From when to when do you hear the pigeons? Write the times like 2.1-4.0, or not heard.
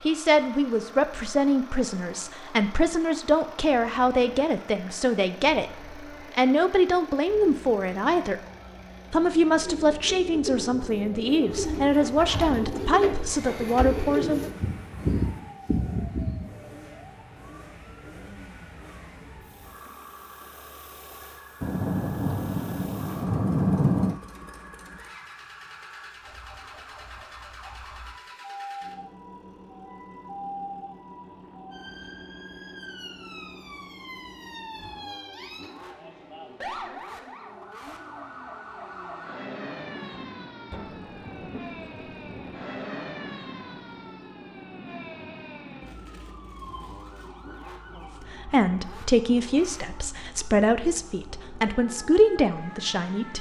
9.6-16.4.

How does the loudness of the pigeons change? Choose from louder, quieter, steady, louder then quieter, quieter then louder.
louder.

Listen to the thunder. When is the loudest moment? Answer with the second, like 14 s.
24 s.